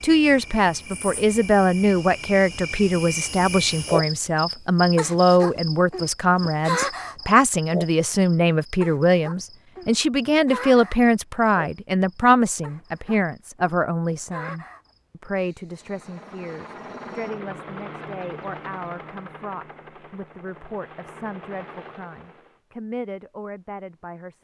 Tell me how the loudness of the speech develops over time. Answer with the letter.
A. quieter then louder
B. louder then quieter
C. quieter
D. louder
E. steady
C.